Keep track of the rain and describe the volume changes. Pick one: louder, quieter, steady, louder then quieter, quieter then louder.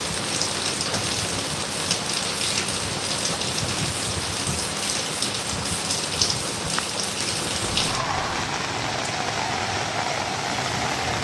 steady.